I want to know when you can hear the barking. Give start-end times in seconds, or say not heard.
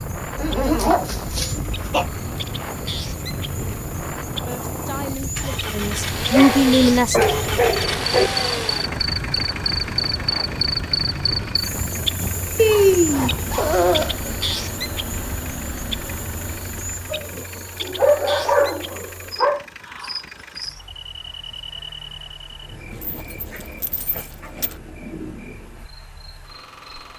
0.3-2.0, 6.3-8.3, 12.6-14.2, 17.1-19.6, 22.9-24.8.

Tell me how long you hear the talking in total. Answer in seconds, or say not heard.
3 s.